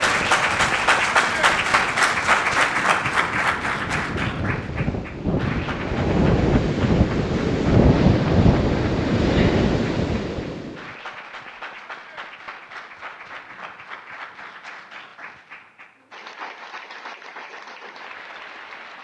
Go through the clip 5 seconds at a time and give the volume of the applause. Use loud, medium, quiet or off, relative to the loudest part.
loud, quiet, quiet, quiet.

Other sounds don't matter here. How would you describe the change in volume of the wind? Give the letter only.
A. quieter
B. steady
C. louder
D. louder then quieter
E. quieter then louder
C.